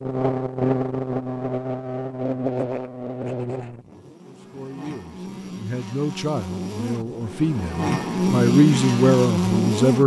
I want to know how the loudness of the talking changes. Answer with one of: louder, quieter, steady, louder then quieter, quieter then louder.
louder.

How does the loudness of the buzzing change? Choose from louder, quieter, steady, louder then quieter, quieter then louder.
quieter then louder.